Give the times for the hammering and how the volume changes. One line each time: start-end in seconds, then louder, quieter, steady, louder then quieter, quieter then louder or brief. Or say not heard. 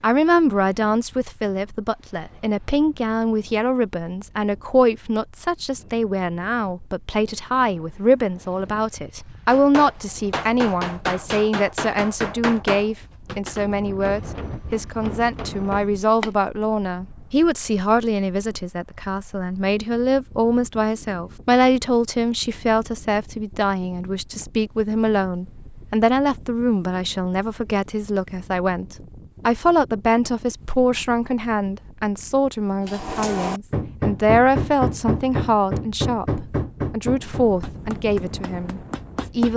9.4-16.3 quieter
32.9-39.5 quieter.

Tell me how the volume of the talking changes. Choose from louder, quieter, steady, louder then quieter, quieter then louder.
steady.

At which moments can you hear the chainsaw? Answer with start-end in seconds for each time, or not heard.
not heard.